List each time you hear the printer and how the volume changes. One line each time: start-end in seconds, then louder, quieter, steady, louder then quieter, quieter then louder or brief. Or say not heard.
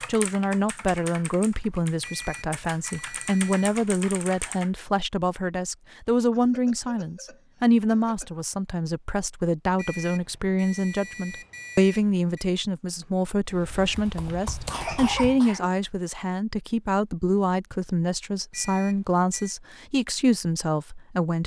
not heard.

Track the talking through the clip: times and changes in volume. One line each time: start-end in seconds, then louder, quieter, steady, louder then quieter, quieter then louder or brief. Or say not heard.
0.1-21.4 steady.